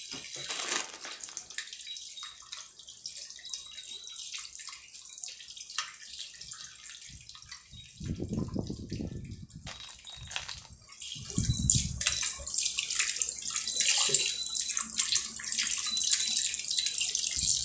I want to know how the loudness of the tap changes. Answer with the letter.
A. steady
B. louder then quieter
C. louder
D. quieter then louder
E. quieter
C.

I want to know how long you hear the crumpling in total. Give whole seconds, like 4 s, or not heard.
2 s.